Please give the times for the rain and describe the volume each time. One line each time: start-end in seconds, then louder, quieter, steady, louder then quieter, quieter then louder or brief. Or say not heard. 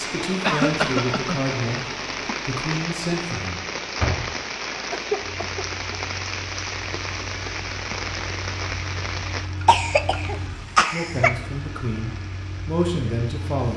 0.0-13.7 quieter.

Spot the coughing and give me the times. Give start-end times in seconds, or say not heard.
0.4-1.4, 4.8-6.0, 9.7-11.3.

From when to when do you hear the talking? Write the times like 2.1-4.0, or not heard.
0.0-1.9, 2.5-3.6, 10.9-13.7.